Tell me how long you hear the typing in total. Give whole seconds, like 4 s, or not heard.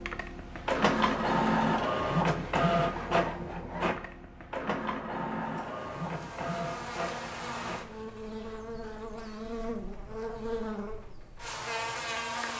not heard.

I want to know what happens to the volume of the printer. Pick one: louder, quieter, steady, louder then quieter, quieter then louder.
quieter.